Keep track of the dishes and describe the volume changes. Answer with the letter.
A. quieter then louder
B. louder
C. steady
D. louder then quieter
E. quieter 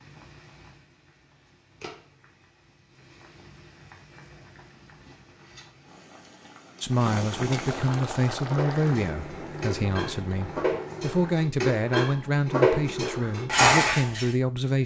B.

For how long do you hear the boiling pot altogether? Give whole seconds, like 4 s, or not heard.
11 s.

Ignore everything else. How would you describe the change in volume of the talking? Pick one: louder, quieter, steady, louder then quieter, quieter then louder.
steady.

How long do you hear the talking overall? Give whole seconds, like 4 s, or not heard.
8 s.